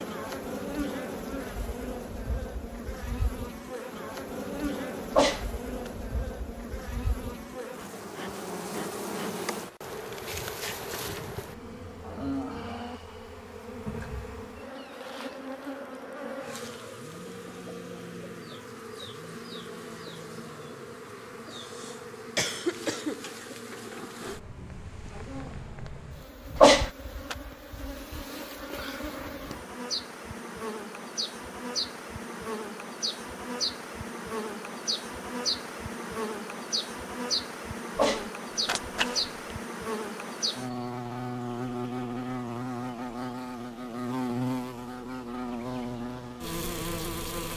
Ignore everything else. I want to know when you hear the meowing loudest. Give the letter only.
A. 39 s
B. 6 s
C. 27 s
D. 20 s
C.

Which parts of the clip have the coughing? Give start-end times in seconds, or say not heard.
21.5-23.2.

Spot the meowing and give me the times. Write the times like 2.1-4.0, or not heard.
5.1-5.9, 26.6-27.4, 38.0-39.2.